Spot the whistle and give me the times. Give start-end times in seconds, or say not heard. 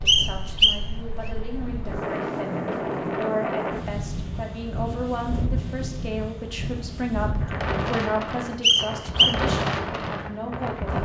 0.1-0.8, 8.6-9.4.